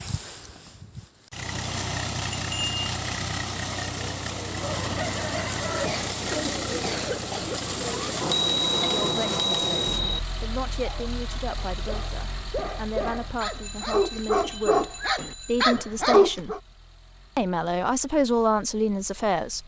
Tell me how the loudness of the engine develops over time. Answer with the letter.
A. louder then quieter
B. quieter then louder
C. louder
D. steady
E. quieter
E.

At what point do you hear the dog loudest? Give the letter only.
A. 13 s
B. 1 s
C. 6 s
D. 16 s
D.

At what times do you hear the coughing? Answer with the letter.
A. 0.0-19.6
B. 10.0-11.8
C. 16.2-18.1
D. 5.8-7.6
D.